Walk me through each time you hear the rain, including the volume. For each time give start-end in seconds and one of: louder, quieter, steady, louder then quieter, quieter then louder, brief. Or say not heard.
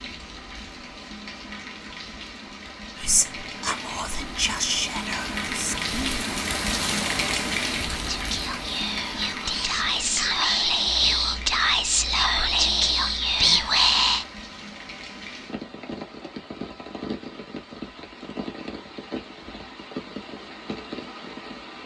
0.0-21.8 louder then quieter.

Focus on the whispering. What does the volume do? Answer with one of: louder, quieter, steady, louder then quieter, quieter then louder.
quieter then louder.